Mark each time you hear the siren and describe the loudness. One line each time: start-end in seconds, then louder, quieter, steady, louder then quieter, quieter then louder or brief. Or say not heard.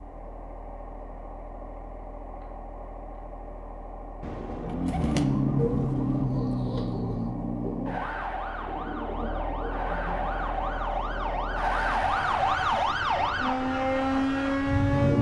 4.7-15.1 quieter then louder.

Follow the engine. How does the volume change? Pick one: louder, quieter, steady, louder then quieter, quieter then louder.
louder.